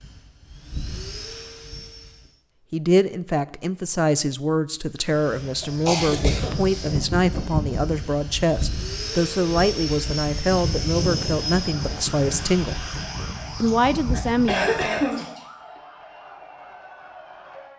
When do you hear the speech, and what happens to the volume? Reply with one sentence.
You can hear the speech from 2.7 to 12.9 s, at a steady volume; and briefly from 13.6 to 15.1 s.